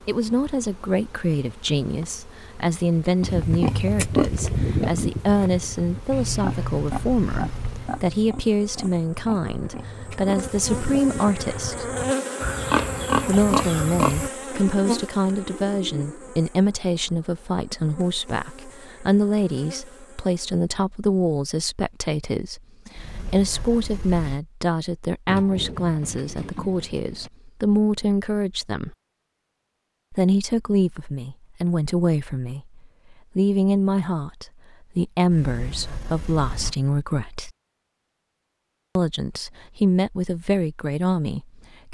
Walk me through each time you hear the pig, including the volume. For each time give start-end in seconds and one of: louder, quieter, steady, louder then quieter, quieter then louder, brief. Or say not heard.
3.2-14.3 quieter then louder.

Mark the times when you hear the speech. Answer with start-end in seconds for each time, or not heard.
0.1-11.9, 13.2-28.9, 30.1-37.5, 39.0-41.8.